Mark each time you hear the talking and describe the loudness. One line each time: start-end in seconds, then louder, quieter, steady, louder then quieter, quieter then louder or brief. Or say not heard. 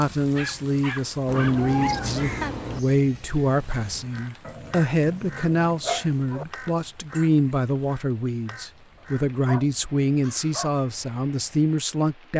0.0-12.3 steady.